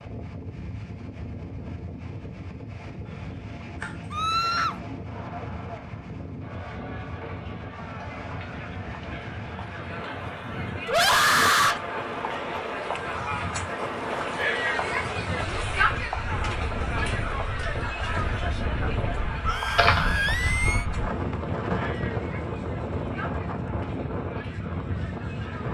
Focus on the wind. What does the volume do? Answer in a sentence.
The volume of the wind goes up.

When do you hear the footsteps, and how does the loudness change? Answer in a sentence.
The footsteps can't be heard in this clip.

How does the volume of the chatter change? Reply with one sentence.
The volume of the chatter goes up, then down.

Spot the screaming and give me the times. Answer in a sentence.
The screaming can be heard from 4.1 to 4.8 s, from 10.8 to 11.8 s and from 19.4 to 20.9 s.